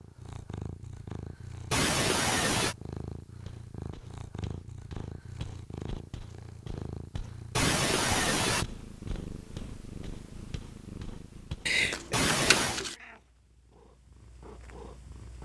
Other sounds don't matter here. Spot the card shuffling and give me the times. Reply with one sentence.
The card shuffling can be heard from 11.7 to 12.9 s.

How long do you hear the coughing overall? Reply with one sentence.
You can hear the coughing for 3 seconds altogether.